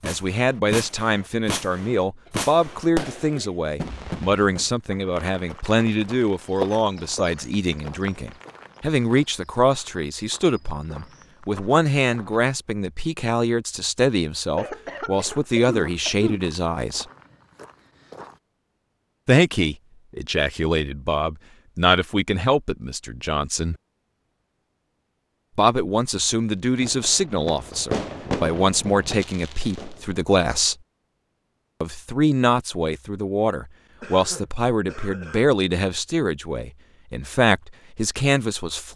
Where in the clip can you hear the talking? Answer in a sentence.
The talking can be heard from 0.0 to 17.1 s, from 19.2 to 23.8 s, from 25.6 to 30.8 s and from 31.8 to 38.9 s.